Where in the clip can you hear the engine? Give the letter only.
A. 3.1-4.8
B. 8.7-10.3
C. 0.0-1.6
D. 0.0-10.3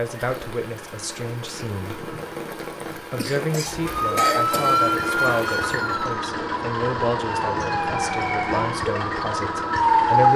D.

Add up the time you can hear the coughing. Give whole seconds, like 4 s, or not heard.
2 s.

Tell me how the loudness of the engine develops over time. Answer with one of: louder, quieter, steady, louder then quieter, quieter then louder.
louder.